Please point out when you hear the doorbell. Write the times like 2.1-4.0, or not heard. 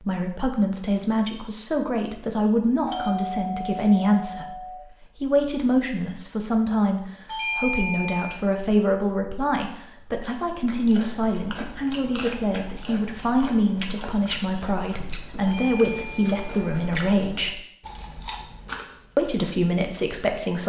2.9-4.8, 7.2-8.4, 15.4-16.9.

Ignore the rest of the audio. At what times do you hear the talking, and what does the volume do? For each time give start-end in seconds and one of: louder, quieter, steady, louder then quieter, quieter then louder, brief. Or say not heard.
0.0-17.6 steady
19.1-20.6 brief.